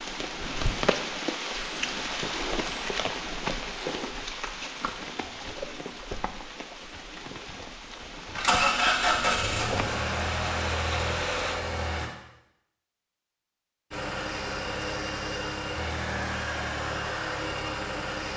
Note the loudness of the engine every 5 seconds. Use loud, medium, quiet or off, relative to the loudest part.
off, loud, medium, medium.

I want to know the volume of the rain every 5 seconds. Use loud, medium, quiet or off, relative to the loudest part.
loud, medium, loud, off.